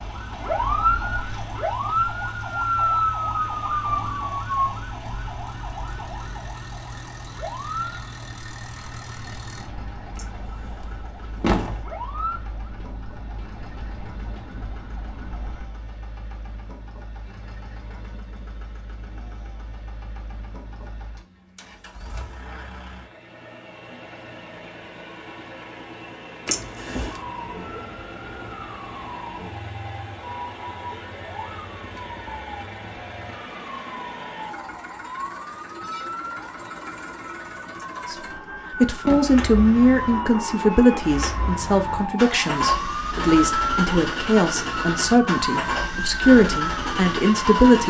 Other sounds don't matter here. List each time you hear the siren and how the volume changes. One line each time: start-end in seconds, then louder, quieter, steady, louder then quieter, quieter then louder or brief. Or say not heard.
0.0-15.7 quieter
27.1-47.8 louder.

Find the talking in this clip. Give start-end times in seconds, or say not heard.
38.1-47.8.